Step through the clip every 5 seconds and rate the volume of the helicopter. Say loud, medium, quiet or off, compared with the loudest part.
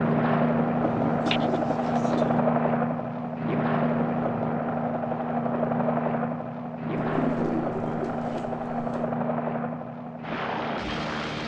loud, loud, medium.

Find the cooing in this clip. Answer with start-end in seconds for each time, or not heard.
0.8-2.4, 7.0-9.2.